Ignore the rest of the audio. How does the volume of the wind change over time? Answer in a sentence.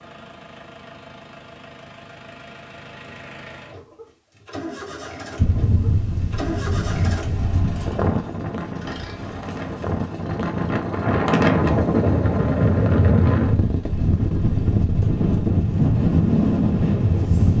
The volume of the wind goes up.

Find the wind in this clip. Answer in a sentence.
The wind can be heard from 5.3 to 17.5 s.